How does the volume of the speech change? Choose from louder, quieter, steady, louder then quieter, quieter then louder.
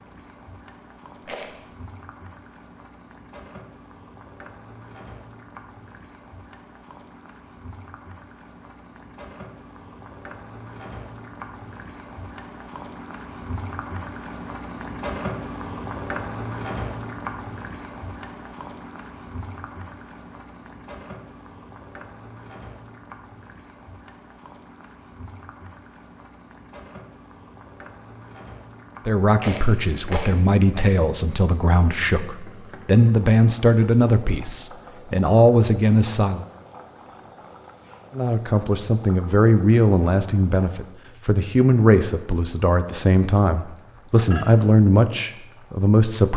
steady.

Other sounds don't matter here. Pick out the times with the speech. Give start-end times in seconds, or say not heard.
29.1-36.5, 38.1-46.3.